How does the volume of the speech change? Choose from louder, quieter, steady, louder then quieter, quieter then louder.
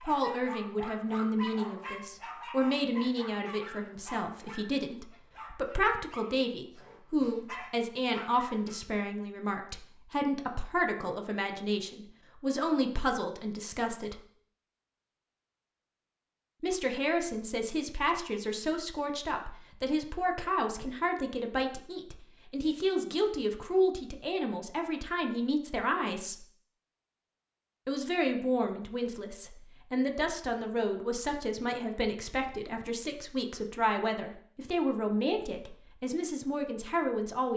steady.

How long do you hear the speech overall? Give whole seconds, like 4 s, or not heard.
34 s.